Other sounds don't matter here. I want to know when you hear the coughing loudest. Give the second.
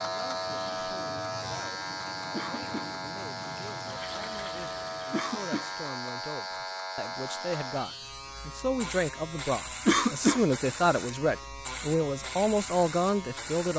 10 s.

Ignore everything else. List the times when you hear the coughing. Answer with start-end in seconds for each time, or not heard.
2.3-3.0, 5.1-5.8, 9.8-10.4.